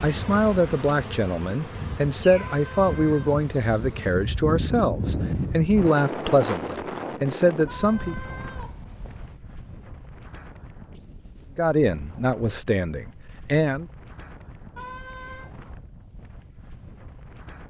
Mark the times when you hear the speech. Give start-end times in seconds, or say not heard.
0.0-8.2, 11.6-13.9.